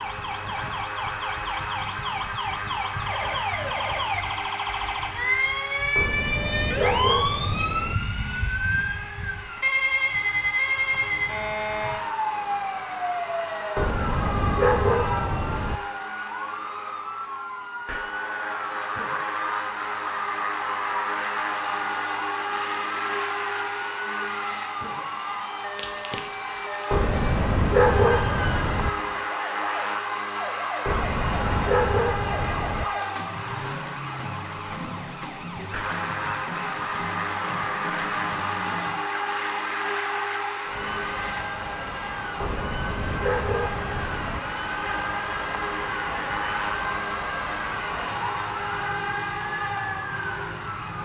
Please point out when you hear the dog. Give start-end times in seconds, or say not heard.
6.0-8.0, 13.8-15.8, 26.9-28.9, 30.9-32.9, 42.4-44.4.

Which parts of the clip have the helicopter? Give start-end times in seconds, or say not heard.
0.0-50.9.